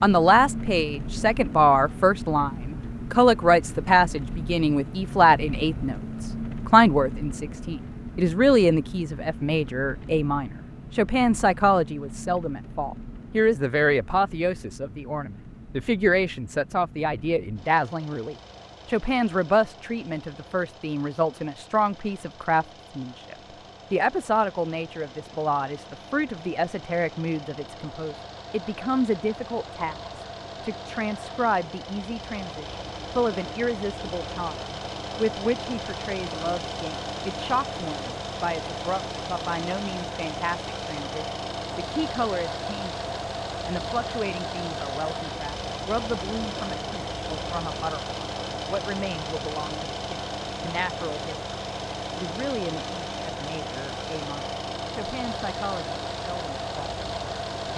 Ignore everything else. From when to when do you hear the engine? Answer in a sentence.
The engine can be heard from 0.0 to 57.7 s.